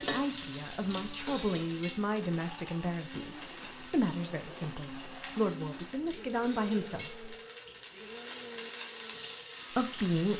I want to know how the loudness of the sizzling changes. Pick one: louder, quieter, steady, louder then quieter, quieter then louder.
quieter then louder.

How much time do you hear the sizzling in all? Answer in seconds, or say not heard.
10 s.